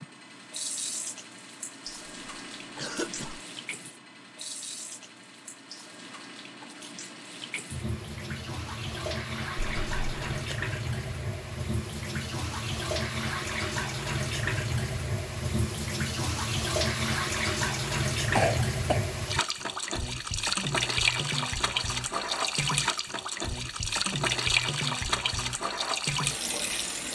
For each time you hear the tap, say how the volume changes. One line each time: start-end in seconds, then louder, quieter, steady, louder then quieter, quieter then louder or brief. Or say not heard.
0.0-27.1 louder.